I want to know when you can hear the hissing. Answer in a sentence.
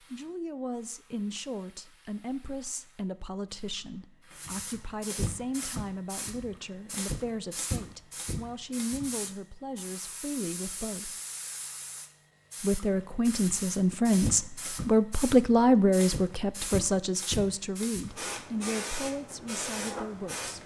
You can hear the hissing from 0.0 to 20.6 s.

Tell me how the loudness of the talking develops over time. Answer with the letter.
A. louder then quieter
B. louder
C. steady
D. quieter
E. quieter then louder
A.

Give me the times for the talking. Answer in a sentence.
The talking can be heard from 0.1 to 11.2 s and from 12.6 to 20.6 s.